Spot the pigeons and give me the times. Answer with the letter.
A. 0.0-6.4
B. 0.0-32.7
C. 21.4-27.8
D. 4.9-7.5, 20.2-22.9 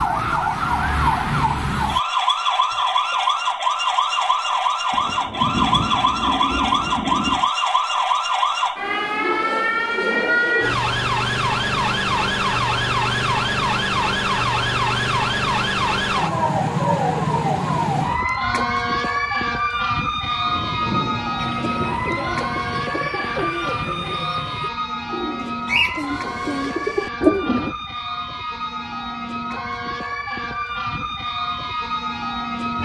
C.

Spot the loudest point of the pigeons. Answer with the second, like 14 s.
27 s.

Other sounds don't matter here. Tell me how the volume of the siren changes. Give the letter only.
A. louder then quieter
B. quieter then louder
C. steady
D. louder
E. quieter
E.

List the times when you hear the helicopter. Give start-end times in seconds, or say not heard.
not heard.